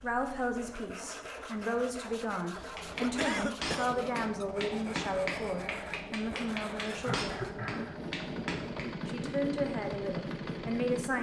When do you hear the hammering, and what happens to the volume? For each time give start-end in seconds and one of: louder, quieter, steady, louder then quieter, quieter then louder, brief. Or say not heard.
2.7-8.9 steady.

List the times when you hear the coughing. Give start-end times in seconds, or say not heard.
2.5-4.0, 7.0-8.0.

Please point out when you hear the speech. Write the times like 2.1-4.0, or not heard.
0.0-7.5, 9.1-11.1.